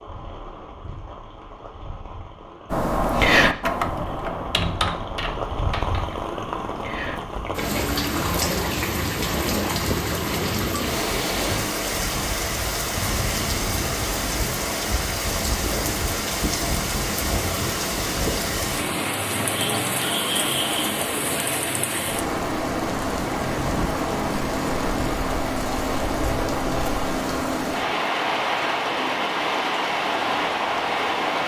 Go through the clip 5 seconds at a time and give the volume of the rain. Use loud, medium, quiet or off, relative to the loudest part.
quiet, loud, loud, loud, loud, loud, loud.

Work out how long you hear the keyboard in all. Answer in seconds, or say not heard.
5 s.